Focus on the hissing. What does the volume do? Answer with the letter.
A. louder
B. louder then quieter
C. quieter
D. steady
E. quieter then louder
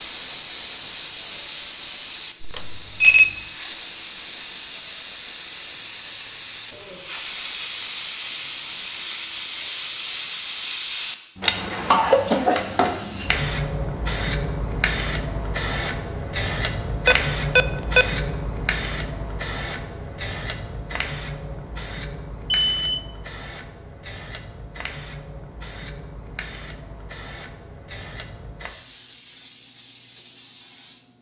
C.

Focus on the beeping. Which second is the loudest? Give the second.
3 s.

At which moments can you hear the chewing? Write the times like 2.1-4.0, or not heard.
not heard.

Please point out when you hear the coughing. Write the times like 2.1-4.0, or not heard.
11.4-12.9.